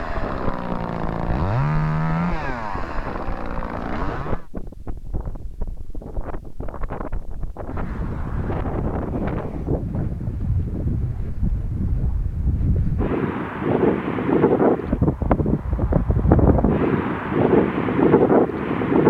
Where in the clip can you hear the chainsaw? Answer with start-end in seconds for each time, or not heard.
0.0-4.5.